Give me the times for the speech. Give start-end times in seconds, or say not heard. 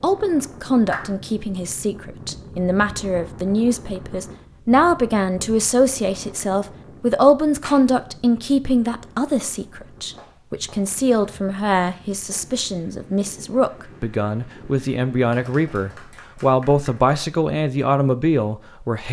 0.0-19.0.